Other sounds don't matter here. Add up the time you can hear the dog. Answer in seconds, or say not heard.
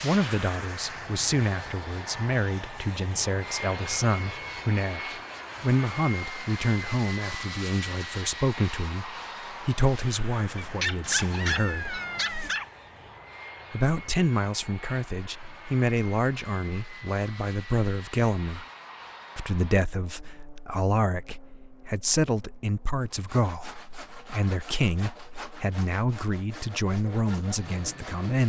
2 s.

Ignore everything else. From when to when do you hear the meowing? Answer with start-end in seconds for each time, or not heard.
11.0-12.6.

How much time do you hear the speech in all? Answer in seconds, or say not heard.
26 s.